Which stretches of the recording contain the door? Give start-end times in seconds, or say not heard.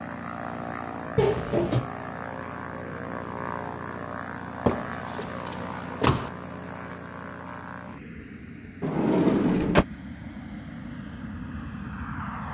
1.1-1.9, 4.7-6.3, 8.8-9.8.